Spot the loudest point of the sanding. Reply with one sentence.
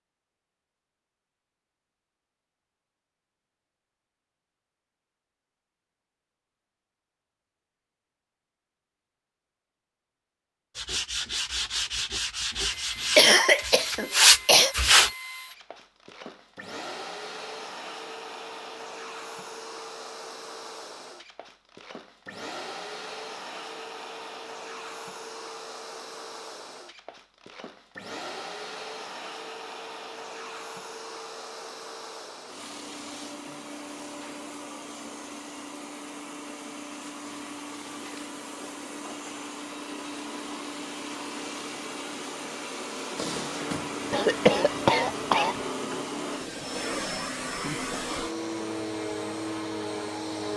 The volume of the sanding peaks at 14 seconds.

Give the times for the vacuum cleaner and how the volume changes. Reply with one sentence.
The vacuum cleaner can be heard from 12.7 to 50.5 s, getting louder.